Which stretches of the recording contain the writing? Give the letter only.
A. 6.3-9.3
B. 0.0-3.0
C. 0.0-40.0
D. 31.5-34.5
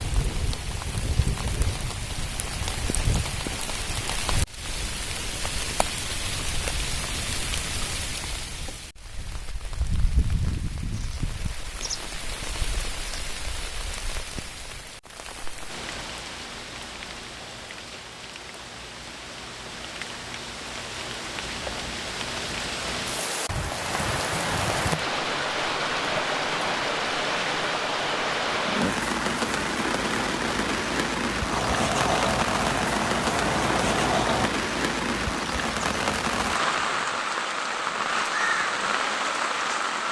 D.